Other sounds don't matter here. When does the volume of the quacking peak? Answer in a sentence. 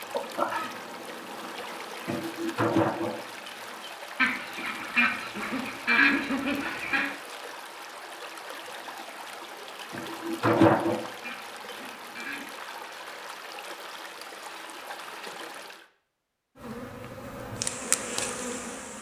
The loudest moment of the quacking is at 6 seconds.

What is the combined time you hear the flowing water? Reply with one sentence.
The flowing water can be heard for 16 seconds in total.